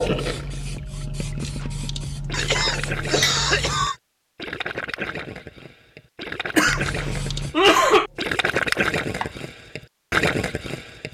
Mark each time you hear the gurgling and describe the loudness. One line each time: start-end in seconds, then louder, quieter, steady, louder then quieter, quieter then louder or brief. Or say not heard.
0.0-11.0 louder.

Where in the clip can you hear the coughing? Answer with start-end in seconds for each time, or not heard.
2.3-4.0, 6.5-8.1.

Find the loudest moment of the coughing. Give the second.
8 s.